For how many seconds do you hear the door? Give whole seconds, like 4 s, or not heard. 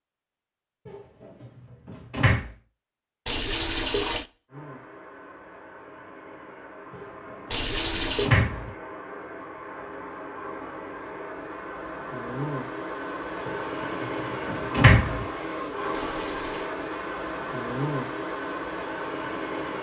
5 s.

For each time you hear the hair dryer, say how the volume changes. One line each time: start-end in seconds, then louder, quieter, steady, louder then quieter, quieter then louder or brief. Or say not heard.
4.5-19.7 louder.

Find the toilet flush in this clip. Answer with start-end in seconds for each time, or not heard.
3.2-4.2, 7.5-8.3, 15.9-16.7.